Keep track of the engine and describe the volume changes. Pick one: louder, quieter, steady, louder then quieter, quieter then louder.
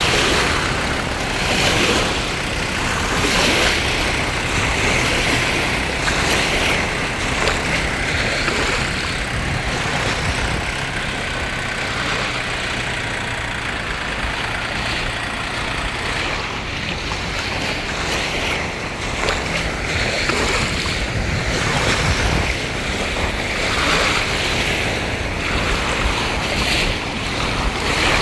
steady.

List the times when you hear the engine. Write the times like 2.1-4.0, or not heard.
0.0-16.2.